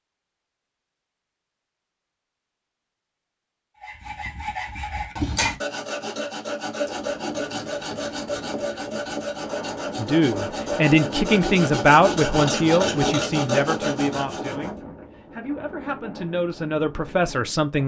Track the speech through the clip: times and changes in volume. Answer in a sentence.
The speech can be heard from 9.9 to 17.8 s, getting quieter then louder.